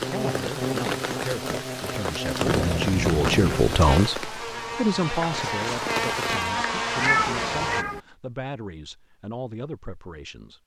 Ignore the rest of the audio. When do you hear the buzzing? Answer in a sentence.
You can hear the buzzing from 0.0 to 7.8 s.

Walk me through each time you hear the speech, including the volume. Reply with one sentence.
The speech can be heard from 0.1 to 10.6 s, getting louder then quieter.